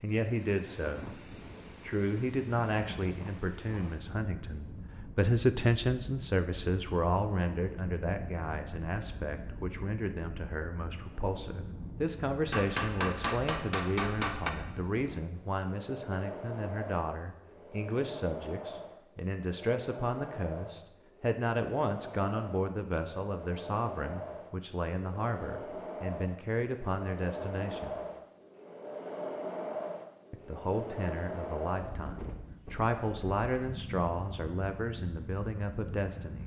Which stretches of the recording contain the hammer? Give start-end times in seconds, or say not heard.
12.5-14.5.